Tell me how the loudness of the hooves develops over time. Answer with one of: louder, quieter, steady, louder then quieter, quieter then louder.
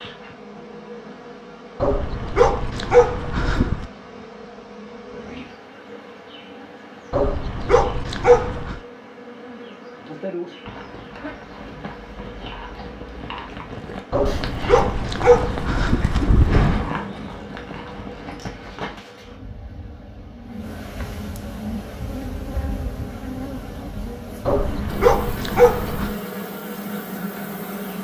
louder then quieter.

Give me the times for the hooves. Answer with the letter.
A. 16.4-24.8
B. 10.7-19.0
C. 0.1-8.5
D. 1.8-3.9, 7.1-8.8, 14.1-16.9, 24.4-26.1
B.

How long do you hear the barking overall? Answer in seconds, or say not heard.
8 s.